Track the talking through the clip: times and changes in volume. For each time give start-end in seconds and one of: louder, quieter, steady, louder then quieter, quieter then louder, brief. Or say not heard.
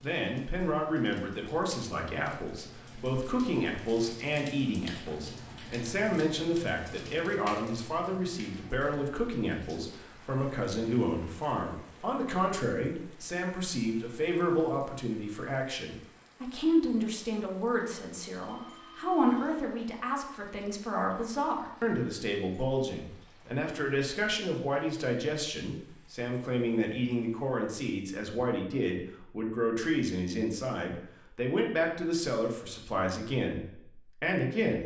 0.0-34.8 steady.